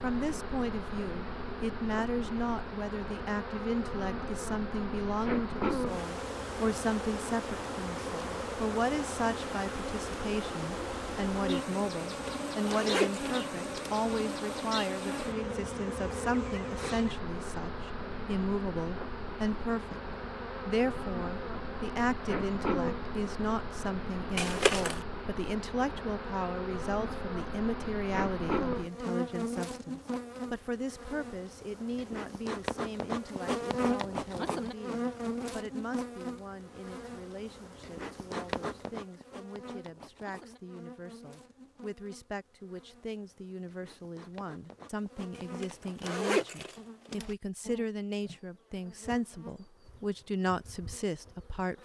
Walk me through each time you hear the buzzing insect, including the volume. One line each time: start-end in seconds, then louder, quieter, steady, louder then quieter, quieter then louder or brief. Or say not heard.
0.0-51.7 quieter.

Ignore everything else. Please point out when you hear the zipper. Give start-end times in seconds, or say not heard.
12.2-13.9, 24.4-25.0, 45.4-47.3.